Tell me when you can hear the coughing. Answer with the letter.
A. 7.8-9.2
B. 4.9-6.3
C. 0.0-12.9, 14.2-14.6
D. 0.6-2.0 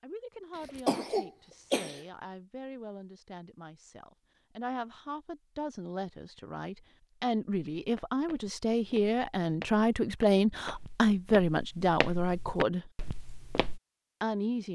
D.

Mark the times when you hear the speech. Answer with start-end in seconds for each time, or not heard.
0.0-12.9, 14.2-14.6.